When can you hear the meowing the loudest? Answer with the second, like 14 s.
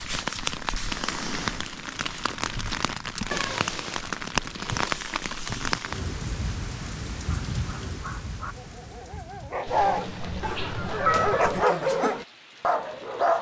11 s.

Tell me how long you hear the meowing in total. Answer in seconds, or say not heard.
3 s.